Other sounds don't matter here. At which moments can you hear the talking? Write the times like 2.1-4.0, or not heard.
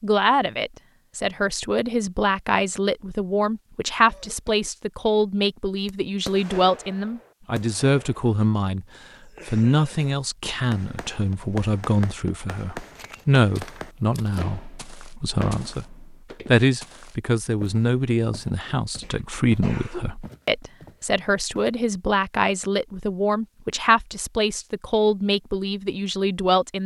0.0-8.8, 9.4-26.8.